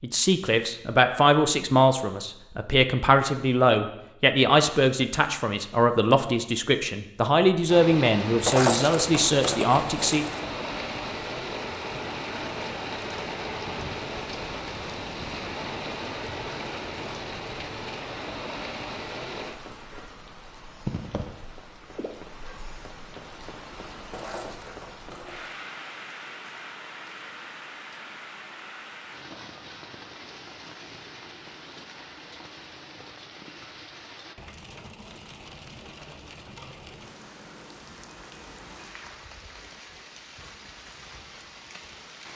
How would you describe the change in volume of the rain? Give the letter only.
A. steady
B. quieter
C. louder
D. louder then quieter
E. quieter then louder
B.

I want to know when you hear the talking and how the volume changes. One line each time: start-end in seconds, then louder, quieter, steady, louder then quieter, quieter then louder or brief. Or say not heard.
0.0-10.2 steady.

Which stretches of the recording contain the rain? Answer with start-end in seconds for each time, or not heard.
7.7-42.3.